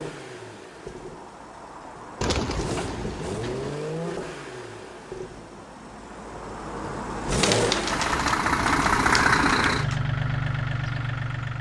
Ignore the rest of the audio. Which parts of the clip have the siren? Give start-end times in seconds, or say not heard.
not heard.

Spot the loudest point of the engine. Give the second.
9 s.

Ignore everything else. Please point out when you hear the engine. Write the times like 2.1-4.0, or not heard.
0.0-11.5.